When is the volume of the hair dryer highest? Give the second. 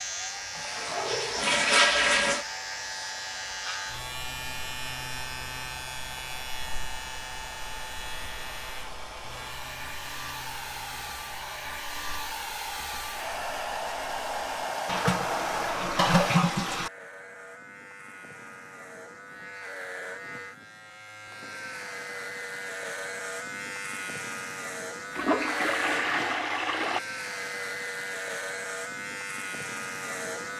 15 s.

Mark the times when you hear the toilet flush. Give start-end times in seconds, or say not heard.
0.6-2.5, 14.8-16.9, 25.1-27.0.